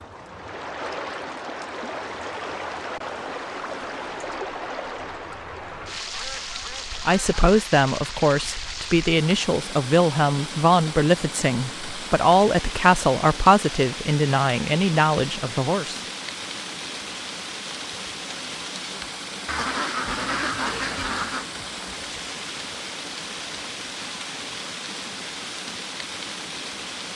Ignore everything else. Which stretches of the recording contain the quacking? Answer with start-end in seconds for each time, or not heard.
6.1-7.4, 19.4-21.4.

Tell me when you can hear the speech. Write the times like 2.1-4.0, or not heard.
7.0-16.0.